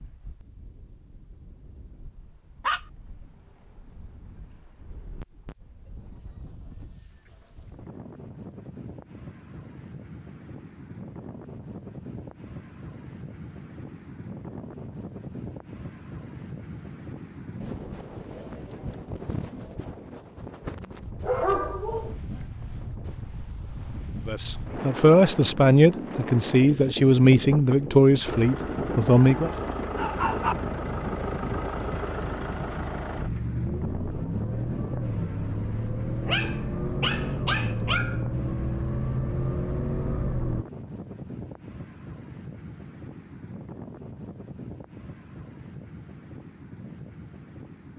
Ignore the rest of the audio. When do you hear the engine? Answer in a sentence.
You can hear the engine from 28.2 to 40.6 s.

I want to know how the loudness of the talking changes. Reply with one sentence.
The volume of the talking goes down.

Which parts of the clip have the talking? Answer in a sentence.
The talking can be heard from 24.2 to 29.5 s.